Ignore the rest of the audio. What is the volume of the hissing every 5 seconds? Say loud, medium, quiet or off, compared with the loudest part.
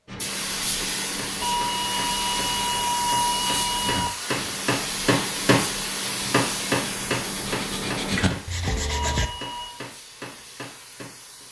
loud, loud, quiet.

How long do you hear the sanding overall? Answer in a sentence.
You can hear the sanding for 9 seconds altogether.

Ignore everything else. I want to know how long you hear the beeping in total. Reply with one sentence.
The beeping can be heard for 4 seconds in total.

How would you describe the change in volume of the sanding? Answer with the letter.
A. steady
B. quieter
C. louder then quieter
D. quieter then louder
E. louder
E.